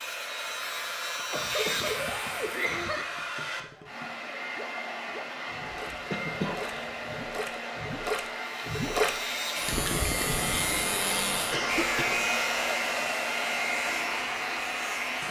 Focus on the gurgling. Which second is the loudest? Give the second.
9 s.